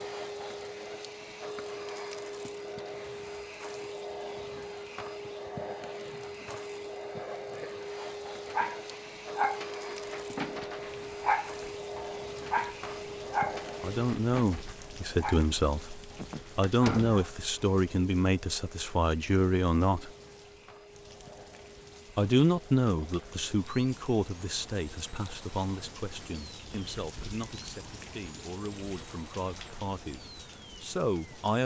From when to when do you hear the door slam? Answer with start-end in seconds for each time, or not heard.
16.6-17.2.